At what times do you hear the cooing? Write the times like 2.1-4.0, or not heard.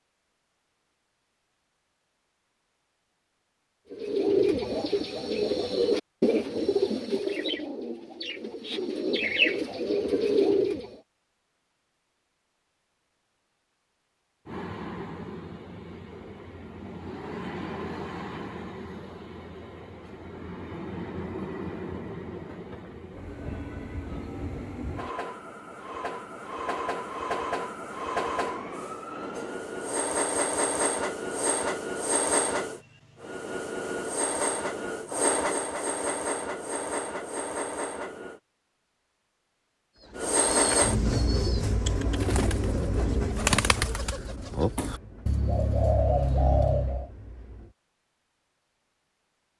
3.9-10.9, 40.0-47.1.